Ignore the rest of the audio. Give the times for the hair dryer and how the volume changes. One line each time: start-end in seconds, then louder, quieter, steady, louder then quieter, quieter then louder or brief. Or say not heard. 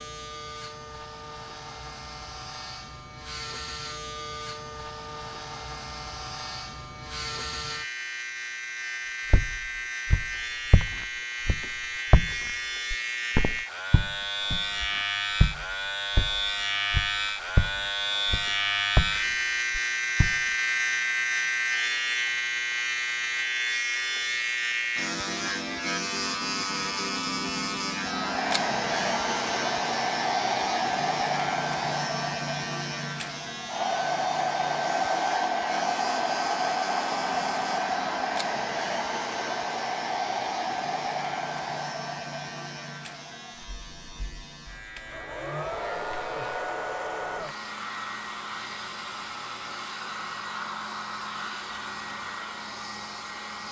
27.9-53.6 quieter.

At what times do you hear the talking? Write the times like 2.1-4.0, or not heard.
not heard.